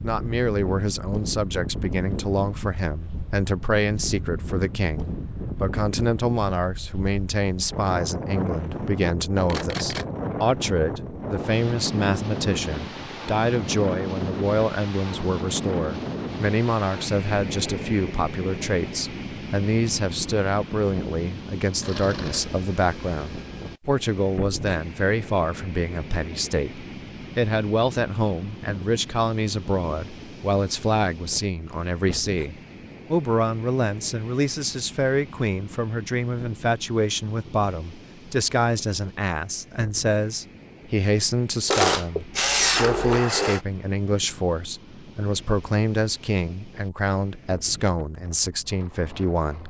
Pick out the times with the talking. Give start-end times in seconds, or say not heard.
0.0-49.6.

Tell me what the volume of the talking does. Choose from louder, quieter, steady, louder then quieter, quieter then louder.
steady.